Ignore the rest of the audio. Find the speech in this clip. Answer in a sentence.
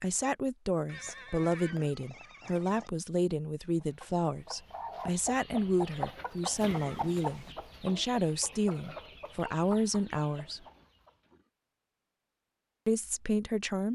You can hear the speech from 0.0 to 10.6 s and from 12.8 to 13.8 s.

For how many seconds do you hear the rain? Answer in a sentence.
The rain can't be heard in this clip.